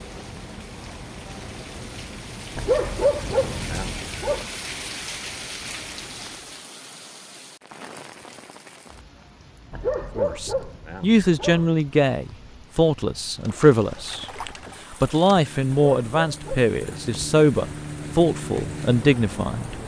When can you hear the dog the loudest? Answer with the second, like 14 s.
3 s.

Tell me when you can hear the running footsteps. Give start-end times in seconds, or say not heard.
not heard.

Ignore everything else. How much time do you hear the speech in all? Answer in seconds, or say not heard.
9 s.